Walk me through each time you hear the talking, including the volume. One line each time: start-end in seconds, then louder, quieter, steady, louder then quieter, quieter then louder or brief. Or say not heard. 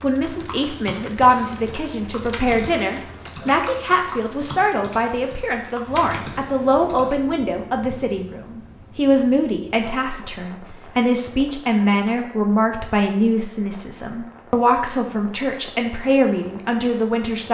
0.0-17.5 steady.